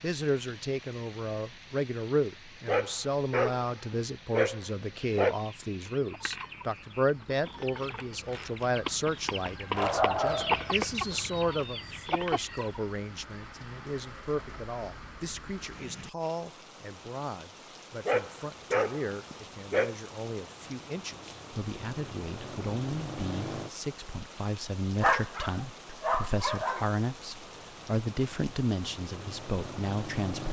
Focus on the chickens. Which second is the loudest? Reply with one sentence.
The loudest moment of the chickens is at 11 seconds.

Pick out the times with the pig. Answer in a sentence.
You can't hear the pig here.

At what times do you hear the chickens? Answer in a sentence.
The chickens can be heard from 5.0 to 12.8 s.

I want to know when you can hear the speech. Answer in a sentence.
You can hear the speech from 0.0 to 30.4 s.